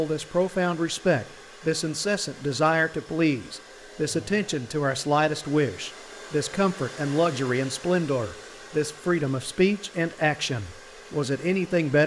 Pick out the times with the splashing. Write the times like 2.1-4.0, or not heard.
not heard.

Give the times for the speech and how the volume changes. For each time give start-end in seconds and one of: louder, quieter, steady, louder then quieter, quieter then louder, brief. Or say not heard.
0.0-12.0 steady.